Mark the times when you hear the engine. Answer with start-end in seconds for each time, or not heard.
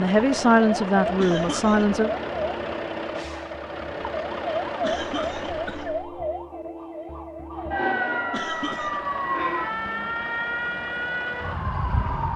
0.0-6.0, 8.3-12.3.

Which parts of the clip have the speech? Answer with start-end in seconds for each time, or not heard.
0.0-2.1.